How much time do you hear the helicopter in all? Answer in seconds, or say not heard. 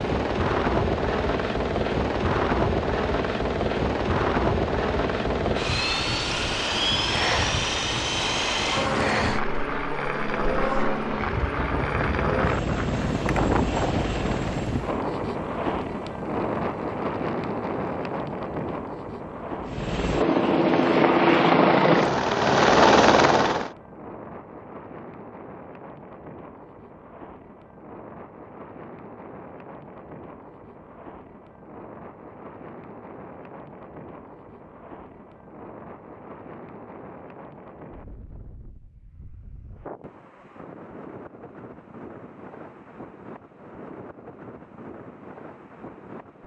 19 s.